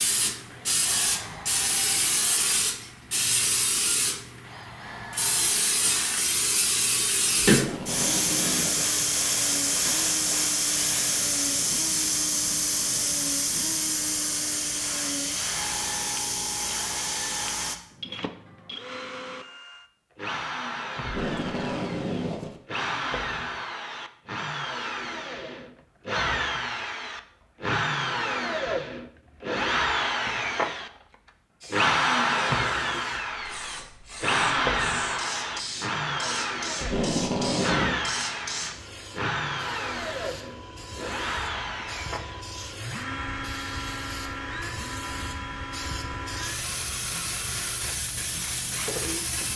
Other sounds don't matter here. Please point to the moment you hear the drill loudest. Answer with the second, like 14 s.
32 s.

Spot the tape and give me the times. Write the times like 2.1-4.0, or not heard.
7.4-8.9, 21.0-22.6, 36.8-38.0.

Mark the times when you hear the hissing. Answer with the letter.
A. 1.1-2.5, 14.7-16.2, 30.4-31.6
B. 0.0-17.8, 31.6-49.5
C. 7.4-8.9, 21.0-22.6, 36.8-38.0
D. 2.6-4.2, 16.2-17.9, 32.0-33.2
B.